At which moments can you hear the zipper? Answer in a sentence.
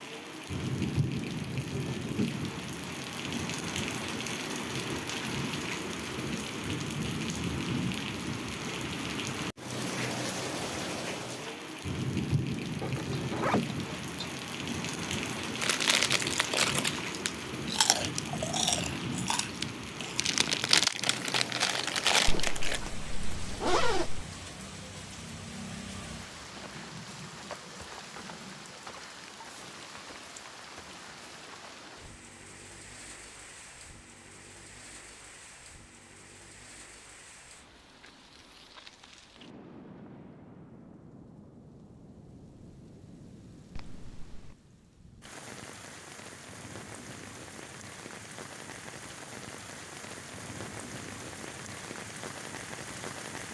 The zipper can be heard from 12.8 to 14.3 s, from 22.2 to 24.2 s and from 43.8 to 44.5 s.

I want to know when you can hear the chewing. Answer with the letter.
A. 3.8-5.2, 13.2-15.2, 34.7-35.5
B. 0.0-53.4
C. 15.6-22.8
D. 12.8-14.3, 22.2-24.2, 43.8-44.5
C.